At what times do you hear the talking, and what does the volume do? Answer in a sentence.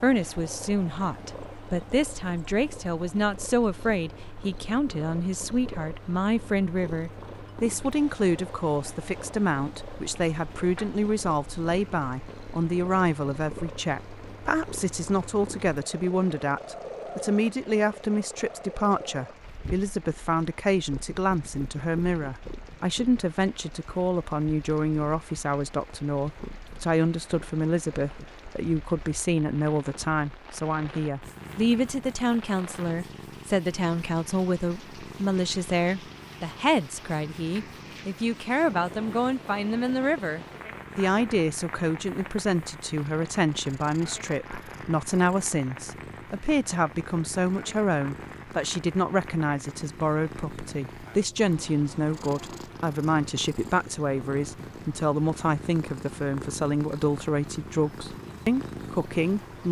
You can hear the talking from 0.0 to 59.6 s, at a steady volume.